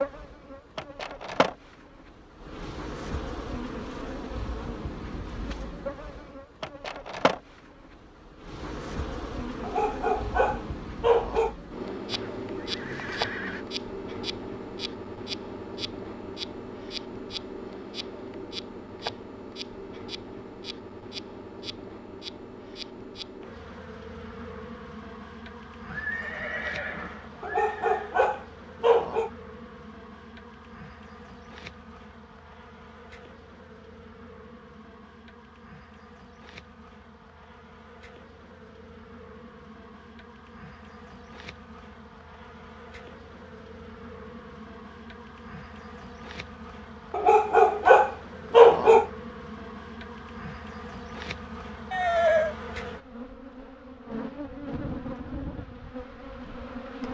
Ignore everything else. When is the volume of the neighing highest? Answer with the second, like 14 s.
52 s.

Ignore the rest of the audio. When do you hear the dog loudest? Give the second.
49 s.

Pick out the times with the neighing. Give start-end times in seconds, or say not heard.
12.1-13.7, 25.9-28.1, 51.9-52.5.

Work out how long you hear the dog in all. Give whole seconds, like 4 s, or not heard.
6 s.